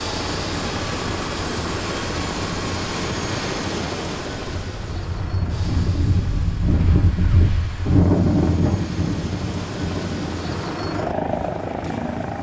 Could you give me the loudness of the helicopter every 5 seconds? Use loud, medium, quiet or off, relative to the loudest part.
loud, medium, loud.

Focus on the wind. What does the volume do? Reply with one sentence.
The volume of the wind goes up, then down.